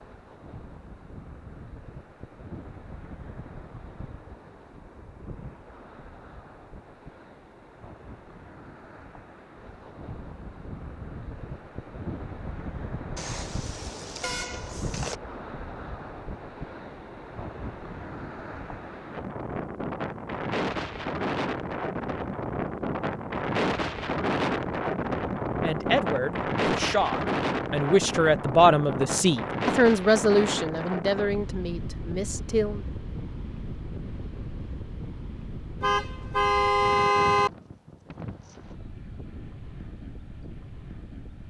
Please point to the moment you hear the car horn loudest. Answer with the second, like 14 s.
37 s.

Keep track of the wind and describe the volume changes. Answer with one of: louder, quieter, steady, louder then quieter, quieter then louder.
louder then quieter.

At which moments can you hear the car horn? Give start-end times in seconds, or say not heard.
13.2-15.2, 35.8-37.5.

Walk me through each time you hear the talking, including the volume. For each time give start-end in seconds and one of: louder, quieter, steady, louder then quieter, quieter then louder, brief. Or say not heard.
25.6-32.9 louder then quieter.